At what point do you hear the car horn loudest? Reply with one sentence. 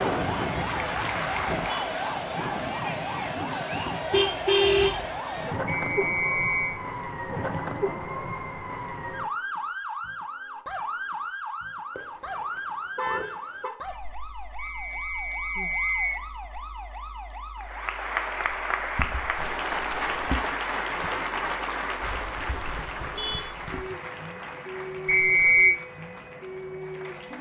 The volume of the car horn peaks at 5 seconds.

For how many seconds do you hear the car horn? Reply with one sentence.
The car horn can be heard for 4 seconds in total.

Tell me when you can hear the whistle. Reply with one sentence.
The whistle can be heard from 5.7 to 6.8 s, from 14.6 to 16.2 s and from 25.1 to 25.8 s.